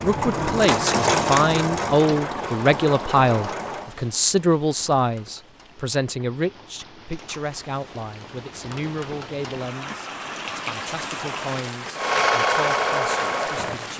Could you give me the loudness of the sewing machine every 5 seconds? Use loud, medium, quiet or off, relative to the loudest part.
loud, off, loud.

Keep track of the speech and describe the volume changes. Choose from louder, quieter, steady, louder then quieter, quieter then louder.
quieter.